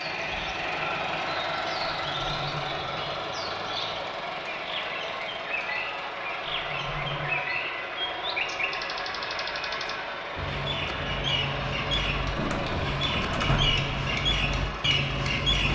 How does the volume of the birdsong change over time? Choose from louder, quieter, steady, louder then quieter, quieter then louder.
louder.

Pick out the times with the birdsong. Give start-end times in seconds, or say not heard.
0.0-15.7.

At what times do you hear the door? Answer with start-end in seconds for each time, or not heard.
2.0-3.2, 6.5-7.3, 12.3-13.8.